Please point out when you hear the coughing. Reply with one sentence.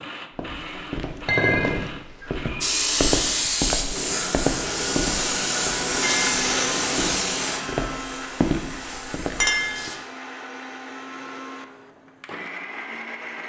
You can't hear the coughing here.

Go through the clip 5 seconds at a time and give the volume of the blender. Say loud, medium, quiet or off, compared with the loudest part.
medium, loud, medium.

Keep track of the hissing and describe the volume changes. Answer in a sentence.
The volume of the hissing goes down.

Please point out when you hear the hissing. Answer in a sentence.
You can hear the hissing from 2.6 to 10.0 s.